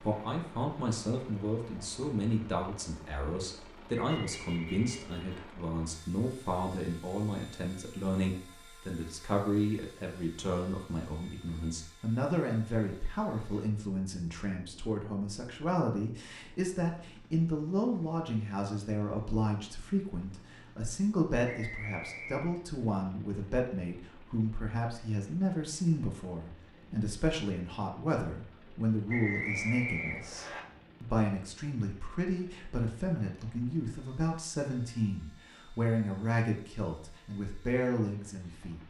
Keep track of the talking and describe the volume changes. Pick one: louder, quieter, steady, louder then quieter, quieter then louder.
steady.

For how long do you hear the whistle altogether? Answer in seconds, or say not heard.
4 s.